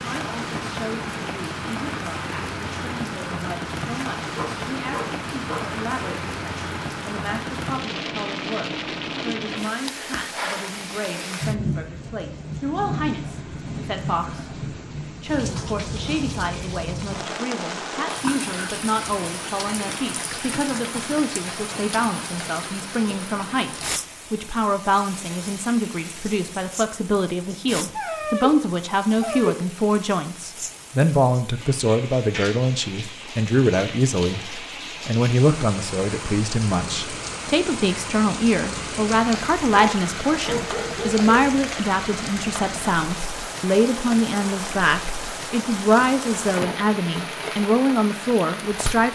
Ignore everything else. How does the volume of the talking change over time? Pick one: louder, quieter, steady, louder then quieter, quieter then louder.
louder.